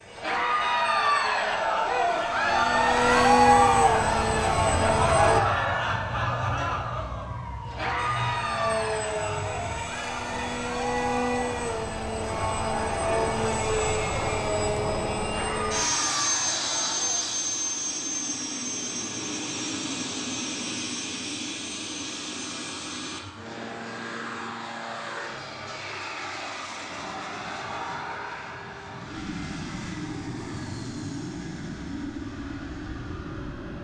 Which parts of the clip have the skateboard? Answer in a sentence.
The skateboard can't be heard in this clip.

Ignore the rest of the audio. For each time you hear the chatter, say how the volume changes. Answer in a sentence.
The chatter can be heard from 0.1 to 17.2 s, getting quieter.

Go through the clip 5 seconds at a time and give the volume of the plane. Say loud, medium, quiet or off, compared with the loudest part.
loud, loud, loud, loud, medium, medium, medium.